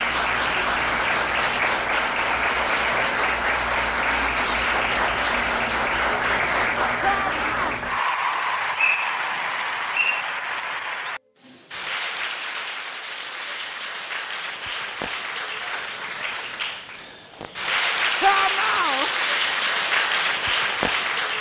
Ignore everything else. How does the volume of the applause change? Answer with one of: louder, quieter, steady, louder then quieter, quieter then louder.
quieter then louder.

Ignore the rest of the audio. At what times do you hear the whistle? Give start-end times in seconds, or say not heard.
8.8-10.2.